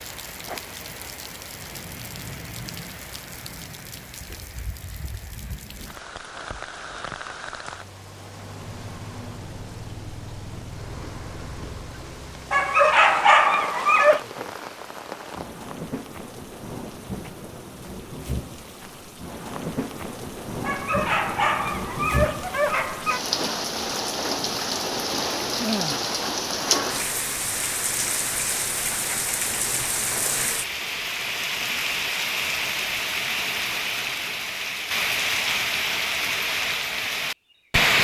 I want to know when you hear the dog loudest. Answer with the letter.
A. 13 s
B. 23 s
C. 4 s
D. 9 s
A.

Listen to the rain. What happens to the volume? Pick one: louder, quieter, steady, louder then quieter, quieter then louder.
louder.